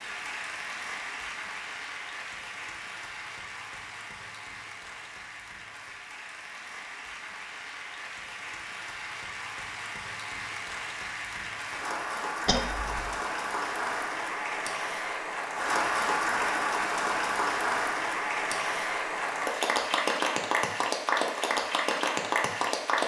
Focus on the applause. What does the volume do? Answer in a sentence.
The loudness of the applause goes up.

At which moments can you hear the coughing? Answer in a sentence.
The coughing can be heard from 12.4 to 13.2 s.